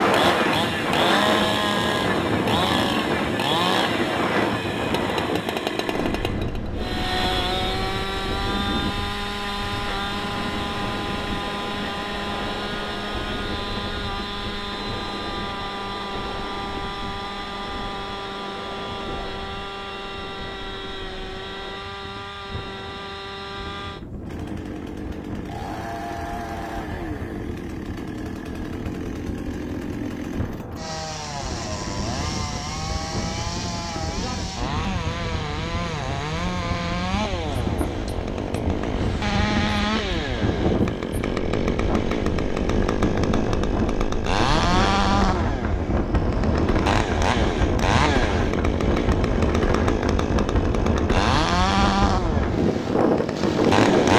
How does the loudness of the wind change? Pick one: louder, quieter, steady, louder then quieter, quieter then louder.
quieter then louder.